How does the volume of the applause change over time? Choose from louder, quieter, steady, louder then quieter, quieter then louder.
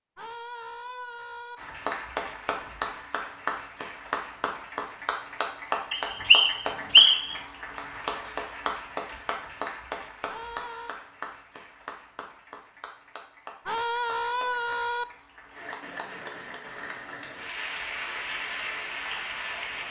quieter then louder.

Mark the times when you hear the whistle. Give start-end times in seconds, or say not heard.
5.9-7.3.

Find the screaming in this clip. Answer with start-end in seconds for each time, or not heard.
0.1-1.6, 10.2-10.9, 13.7-15.1.